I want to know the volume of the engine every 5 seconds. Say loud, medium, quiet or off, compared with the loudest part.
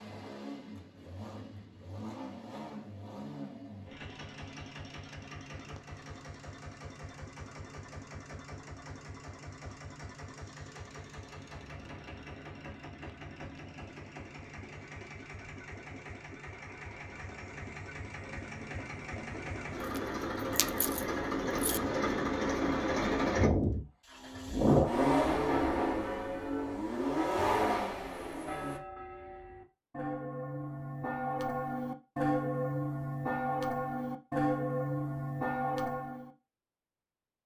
quiet, quiet, quiet, quiet, loud, loud, off, off.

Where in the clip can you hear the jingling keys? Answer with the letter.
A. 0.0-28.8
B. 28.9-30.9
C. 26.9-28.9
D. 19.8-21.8
D.